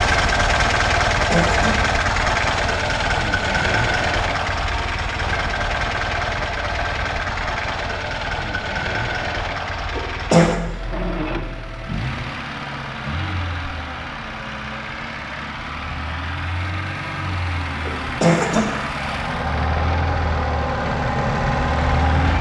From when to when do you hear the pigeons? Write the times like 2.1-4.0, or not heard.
not heard.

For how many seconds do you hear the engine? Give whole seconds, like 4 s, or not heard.
22 s.